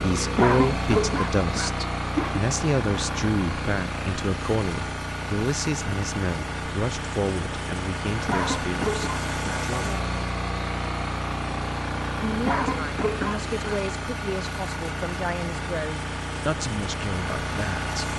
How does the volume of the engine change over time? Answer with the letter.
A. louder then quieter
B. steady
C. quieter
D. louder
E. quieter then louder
B.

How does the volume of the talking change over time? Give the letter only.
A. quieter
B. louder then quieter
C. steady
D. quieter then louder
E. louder
A.